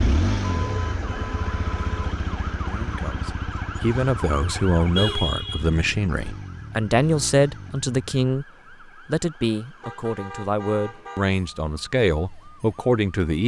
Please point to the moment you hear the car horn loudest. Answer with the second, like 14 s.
5 s.